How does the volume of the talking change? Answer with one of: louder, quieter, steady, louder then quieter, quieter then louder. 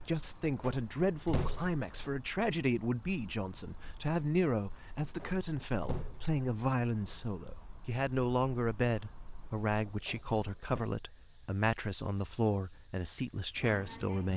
steady.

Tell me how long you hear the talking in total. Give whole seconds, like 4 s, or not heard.
14 s.